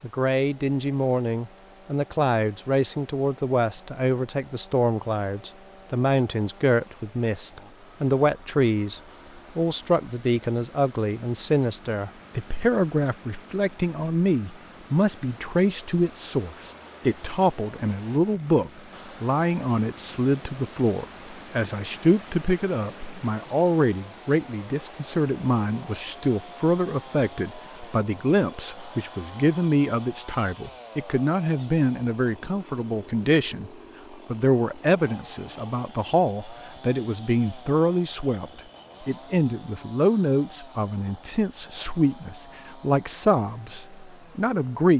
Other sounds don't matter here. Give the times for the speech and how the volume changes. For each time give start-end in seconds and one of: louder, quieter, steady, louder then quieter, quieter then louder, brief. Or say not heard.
0.0-44.9 steady.